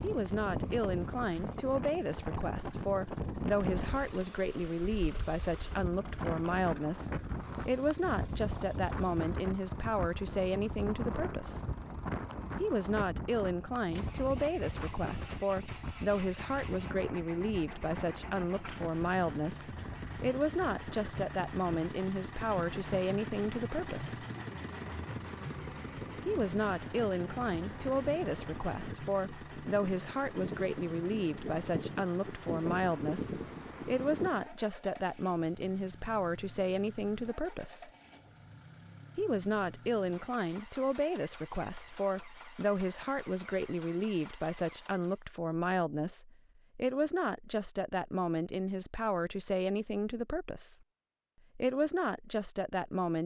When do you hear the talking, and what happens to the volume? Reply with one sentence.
You can hear the talking from 0.0 to 11.7 s, at a steady volume; from 12.6 to 24.2 s, at a steady volume; from 26.2 to 37.9 s, at a steady volume; from 39.1 to 50.8 s, at a steady volume; and briefly from 51.5 to 53.2 s.